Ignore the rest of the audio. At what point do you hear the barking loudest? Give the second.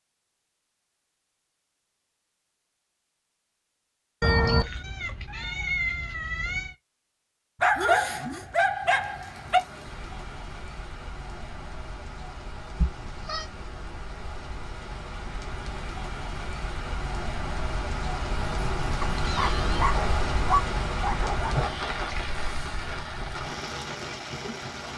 8 s.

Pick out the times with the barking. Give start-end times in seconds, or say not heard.
7.6-9.6, 19.0-21.9.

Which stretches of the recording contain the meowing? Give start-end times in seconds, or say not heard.
4.2-6.8, 12.8-13.4, 18.4-19.9.